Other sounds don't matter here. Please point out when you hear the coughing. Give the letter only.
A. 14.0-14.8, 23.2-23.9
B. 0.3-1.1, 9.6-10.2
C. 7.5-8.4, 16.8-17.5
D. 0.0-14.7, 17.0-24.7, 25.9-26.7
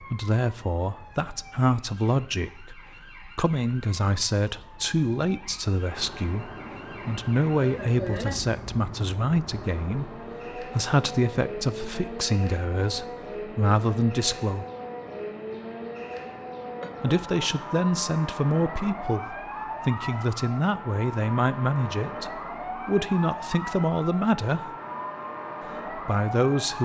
C.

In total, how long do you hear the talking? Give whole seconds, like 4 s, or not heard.
23 s.